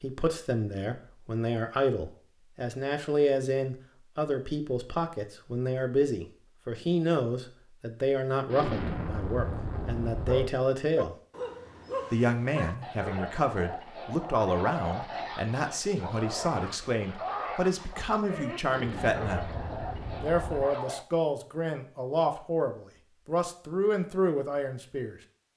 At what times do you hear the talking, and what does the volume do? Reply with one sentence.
The talking can be heard from 0.0 to 11.2 s, at a steady volume; from 12.1 to 19.4 s, at a steady volume; and from 20.2 to 25.1 s, at a steady volume.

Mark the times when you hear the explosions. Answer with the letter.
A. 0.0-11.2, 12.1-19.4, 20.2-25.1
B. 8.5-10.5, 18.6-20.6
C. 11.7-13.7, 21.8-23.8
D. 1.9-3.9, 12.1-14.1
B.